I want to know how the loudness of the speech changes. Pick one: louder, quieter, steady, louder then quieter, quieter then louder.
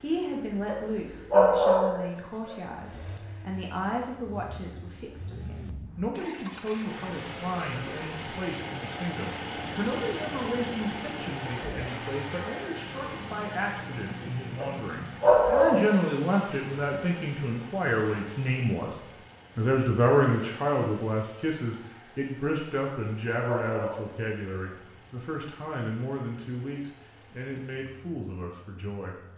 louder then quieter.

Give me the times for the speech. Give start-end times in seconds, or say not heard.
0.0-18.9, 19.6-29.1.